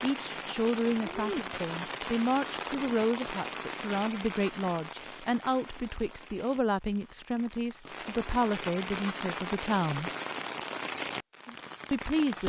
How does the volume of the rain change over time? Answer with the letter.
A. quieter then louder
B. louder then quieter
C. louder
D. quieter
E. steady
A.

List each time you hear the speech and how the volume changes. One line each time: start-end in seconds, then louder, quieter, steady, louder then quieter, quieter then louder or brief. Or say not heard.
0.0-10.1 steady
11.9-12.4 brief.